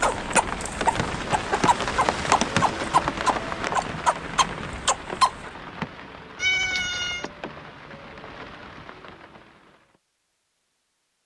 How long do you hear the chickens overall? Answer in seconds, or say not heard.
5 s.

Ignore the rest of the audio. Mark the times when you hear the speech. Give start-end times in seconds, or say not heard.
not heard.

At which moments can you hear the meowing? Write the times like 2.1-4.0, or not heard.
6.3-7.3.